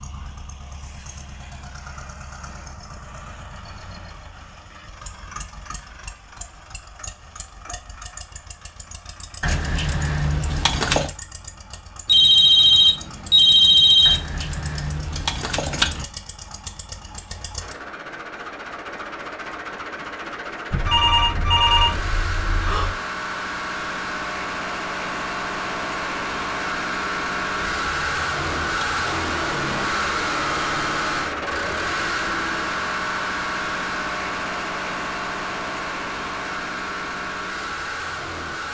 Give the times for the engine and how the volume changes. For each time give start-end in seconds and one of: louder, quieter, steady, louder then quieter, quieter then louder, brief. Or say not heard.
0.0-38.6 louder.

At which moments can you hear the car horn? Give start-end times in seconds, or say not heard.
not heard.